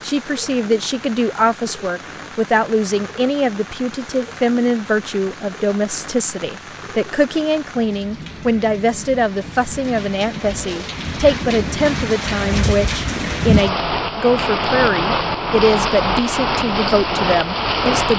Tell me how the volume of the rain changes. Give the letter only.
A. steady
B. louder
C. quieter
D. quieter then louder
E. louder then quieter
B.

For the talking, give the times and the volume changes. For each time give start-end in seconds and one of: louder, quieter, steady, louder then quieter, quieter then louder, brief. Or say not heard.
0.0-18.1 steady.